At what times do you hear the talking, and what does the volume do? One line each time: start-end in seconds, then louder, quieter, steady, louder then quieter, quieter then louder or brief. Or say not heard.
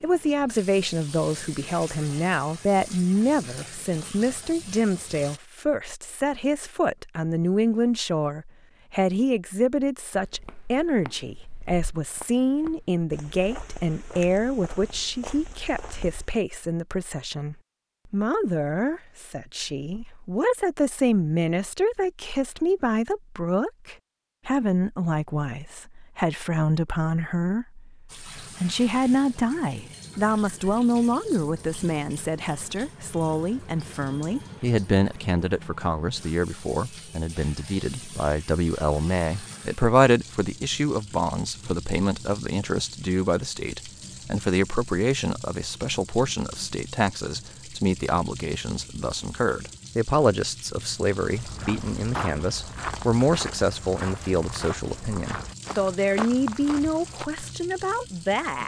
0.0-58.6 steady.